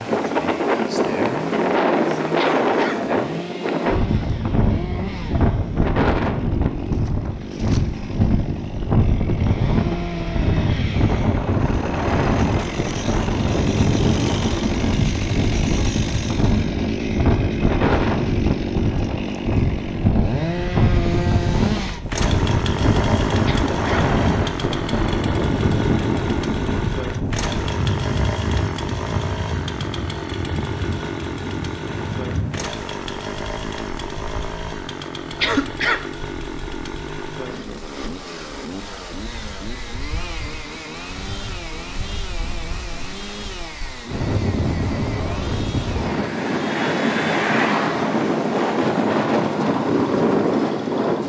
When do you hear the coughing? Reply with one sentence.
You can hear the coughing from 2.4 to 3.0 s, from 23.4 to 24.1 s and from 35.4 to 36.1 s.